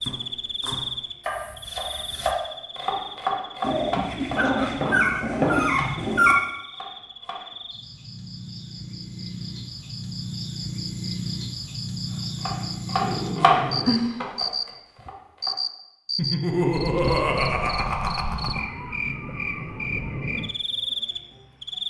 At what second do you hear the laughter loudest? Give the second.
17 s.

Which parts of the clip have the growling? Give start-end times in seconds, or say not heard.
3.6-6.3, 13.0-14.2.